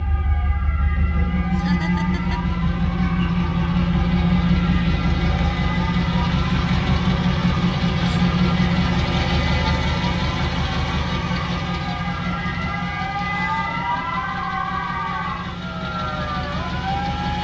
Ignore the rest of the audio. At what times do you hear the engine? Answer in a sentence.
You can hear the engine from 0.0 to 17.3 s.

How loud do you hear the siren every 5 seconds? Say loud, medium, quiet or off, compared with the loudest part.
medium, medium, loud, loud.